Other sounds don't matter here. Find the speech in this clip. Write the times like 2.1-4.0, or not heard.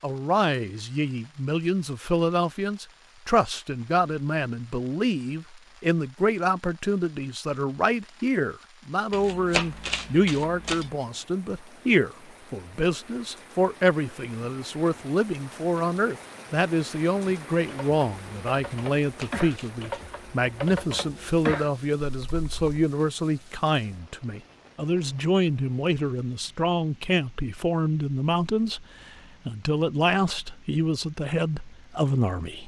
0.0-32.6.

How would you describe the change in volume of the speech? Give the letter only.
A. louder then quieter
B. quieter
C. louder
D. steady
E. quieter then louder
D.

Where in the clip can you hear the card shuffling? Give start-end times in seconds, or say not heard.
9.1-10.9, 19.0-20.1.